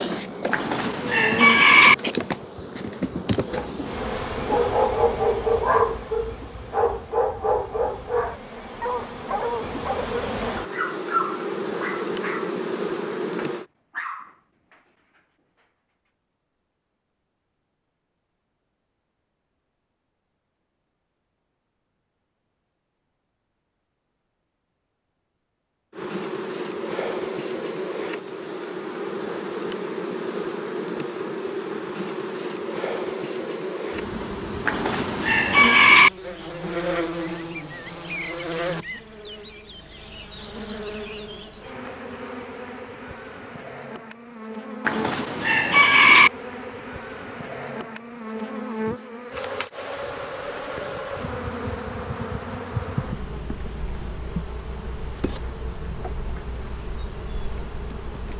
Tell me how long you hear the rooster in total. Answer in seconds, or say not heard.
4 s.